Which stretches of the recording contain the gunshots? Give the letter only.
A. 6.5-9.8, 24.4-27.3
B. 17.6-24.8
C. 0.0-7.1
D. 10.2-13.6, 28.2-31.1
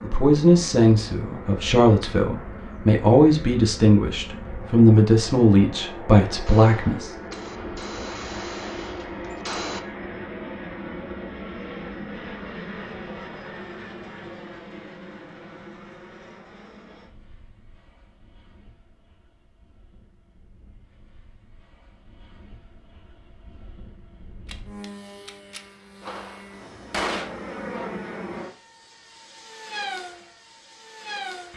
A.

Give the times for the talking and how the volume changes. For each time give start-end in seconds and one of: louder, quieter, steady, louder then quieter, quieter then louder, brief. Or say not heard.
0.0-7.1 steady.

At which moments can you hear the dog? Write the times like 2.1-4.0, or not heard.
not heard.